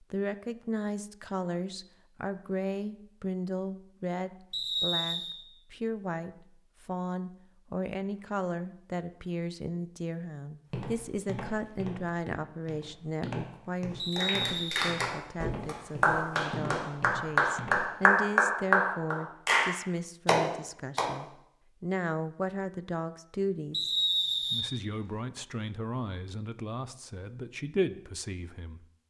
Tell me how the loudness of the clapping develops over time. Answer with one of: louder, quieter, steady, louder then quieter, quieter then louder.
louder.